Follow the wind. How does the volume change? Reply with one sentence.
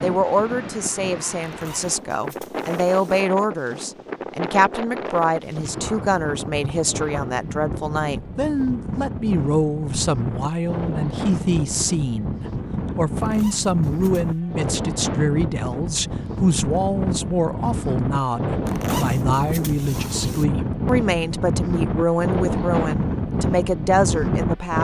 The loudness of the wind goes up.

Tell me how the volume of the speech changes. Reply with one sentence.
The loudness of the speech stays about the same.